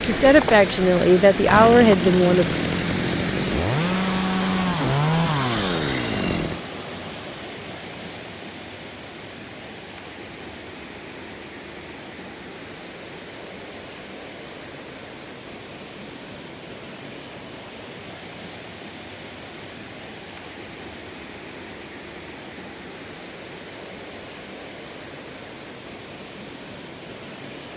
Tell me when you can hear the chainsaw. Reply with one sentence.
The chainsaw can be heard from 0.2 to 6.6 s.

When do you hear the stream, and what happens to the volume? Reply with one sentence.
The stream can be heard from 0.0 to 27.7 s, getting quieter.